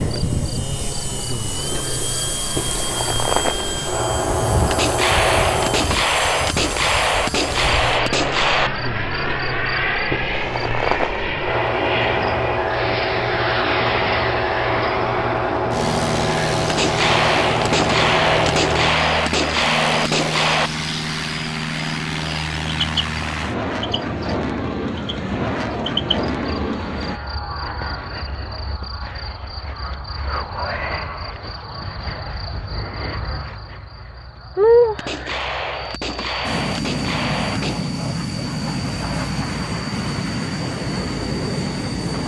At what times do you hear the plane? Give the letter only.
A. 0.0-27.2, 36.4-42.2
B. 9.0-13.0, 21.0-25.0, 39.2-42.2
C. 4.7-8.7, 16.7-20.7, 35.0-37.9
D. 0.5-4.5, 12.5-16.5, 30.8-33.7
A.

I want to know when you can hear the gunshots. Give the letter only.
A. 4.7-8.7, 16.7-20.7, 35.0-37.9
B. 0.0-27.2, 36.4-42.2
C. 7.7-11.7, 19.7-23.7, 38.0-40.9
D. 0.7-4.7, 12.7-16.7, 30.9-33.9
A.